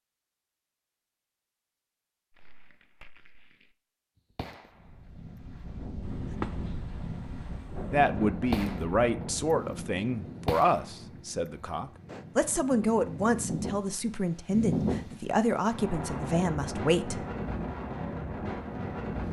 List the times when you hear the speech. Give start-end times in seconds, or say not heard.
7.9-17.2.